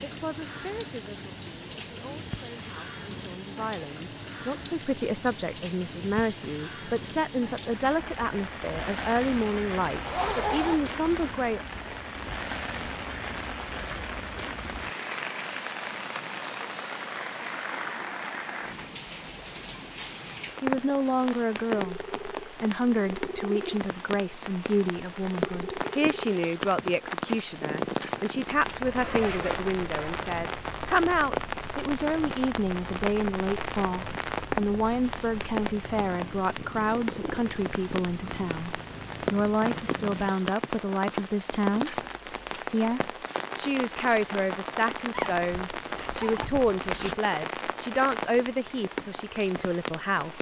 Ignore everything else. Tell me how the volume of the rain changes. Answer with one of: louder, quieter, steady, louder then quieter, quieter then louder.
steady.